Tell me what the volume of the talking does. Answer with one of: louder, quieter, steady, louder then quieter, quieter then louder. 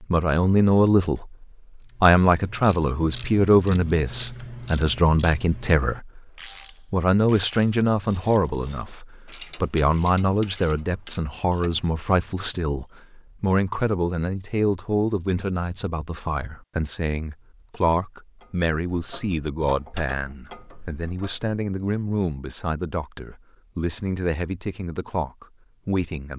quieter.